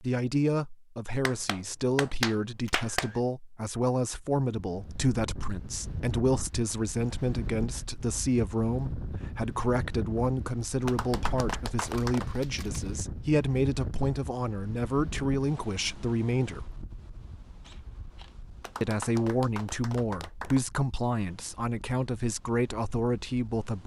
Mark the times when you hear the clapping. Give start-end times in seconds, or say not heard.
1.2-3.1, 10.8-12.4, 18.6-20.6.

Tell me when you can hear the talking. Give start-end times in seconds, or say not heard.
0.0-16.7, 18.8-23.8.